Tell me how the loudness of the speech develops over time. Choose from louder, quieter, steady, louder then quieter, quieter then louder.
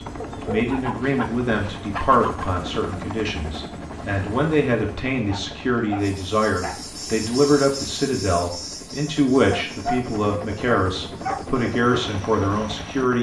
steady.